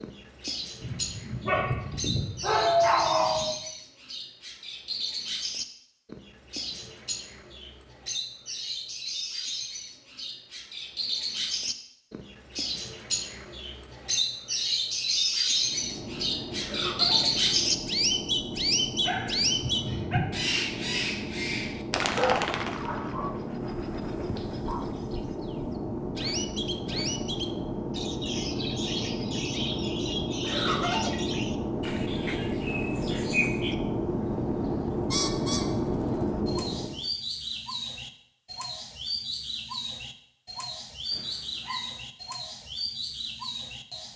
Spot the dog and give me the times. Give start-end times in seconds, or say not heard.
0.8-3.6, 19.0-20.2, 22.1-23.4, 24.4-24.9, 41.1-41.9.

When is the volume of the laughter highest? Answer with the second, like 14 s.
31 s.